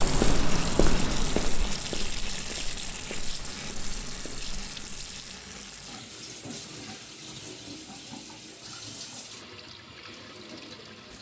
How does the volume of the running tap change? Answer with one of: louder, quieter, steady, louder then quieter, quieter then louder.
quieter.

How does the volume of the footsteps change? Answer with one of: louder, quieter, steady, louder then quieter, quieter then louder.
quieter.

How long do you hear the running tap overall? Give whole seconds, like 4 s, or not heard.
11 s.